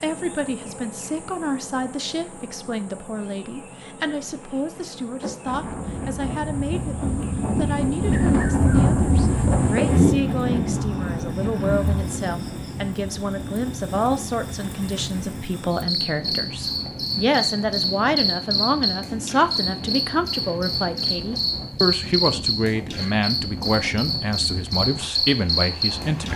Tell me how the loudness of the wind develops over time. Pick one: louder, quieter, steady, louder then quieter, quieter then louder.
quieter.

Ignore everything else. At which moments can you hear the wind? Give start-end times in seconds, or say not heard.
5.4-26.3.